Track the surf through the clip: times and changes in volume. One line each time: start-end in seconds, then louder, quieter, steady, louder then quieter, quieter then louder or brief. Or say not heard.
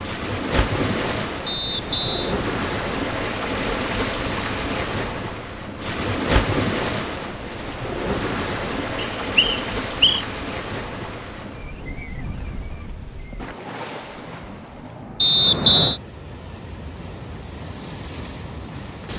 0.0-19.1 quieter.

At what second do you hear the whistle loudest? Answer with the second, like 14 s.
16 s.